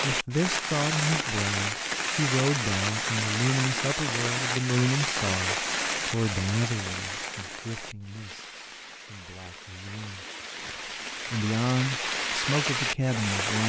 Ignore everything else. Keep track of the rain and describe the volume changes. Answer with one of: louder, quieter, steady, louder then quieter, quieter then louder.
quieter then louder.